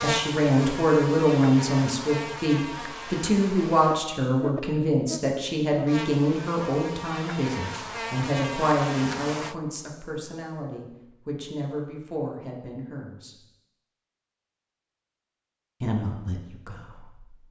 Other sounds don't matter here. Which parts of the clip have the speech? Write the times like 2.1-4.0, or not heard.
0.0-13.3, 15.8-17.2.